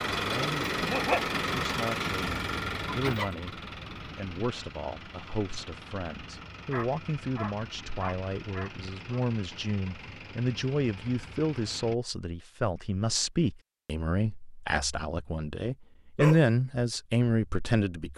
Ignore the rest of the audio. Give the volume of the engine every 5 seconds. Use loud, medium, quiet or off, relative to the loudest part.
loud, quiet, quiet, off.